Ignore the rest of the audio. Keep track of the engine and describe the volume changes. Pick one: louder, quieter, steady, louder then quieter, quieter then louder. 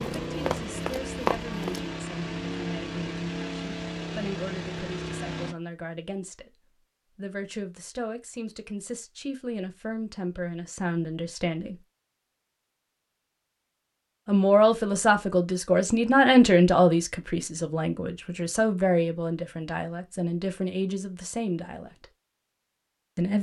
steady.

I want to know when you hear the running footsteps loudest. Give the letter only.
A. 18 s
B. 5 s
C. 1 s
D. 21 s
C.